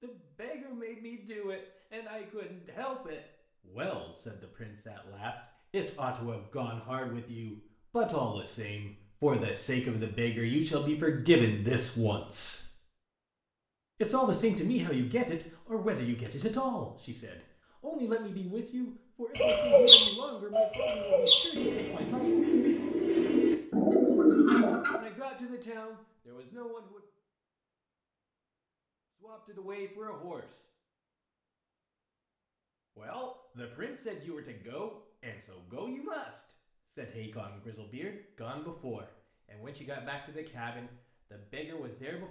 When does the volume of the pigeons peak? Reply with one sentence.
The volume of the pigeons peaks at 20 seconds.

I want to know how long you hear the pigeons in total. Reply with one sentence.
You can hear the pigeons for 6 seconds altogether.